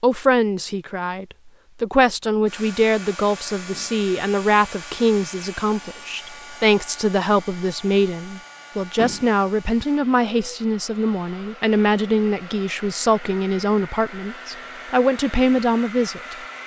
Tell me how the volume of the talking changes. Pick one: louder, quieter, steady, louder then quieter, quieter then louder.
steady.